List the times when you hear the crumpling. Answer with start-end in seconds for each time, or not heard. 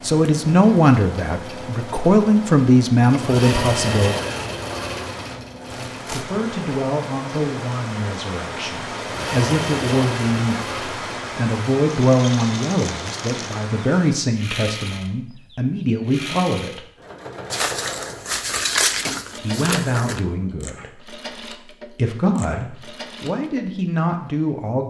5.9-6.3, 12.6-13.3, 17.5-20.2.